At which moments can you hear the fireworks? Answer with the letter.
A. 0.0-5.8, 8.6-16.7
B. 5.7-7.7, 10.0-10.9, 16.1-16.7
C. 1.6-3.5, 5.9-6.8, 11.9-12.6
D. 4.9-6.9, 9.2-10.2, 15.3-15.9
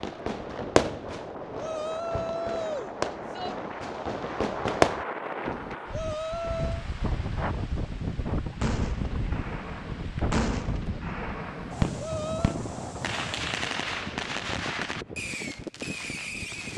A.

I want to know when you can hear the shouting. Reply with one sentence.
You can hear the shouting from 1.6 to 3.5 s, from 5.9 to 6.8 s and from 11.9 to 12.6 s.